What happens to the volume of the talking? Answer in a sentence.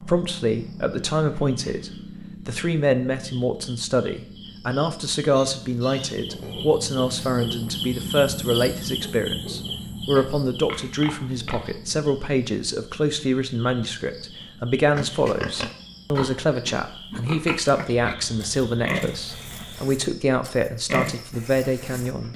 The volume of the talking stays about the same.